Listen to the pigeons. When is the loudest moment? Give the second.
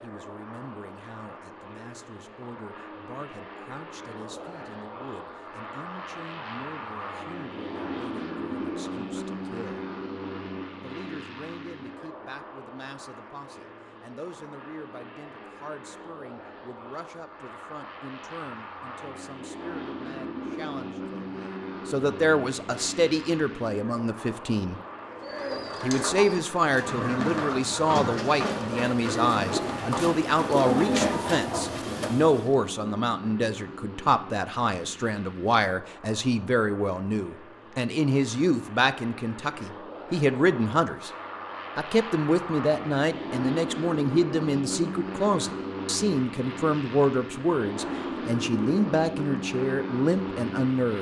31 s.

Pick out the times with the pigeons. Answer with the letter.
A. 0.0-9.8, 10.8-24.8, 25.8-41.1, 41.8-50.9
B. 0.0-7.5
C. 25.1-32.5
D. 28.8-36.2
C.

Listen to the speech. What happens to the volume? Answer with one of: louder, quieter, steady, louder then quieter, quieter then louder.
louder.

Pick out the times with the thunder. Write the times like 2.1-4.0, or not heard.
not heard.